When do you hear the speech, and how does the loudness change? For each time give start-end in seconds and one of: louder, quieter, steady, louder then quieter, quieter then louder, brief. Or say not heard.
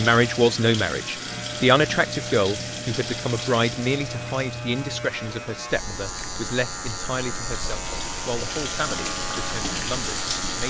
0.0-10.6 quieter.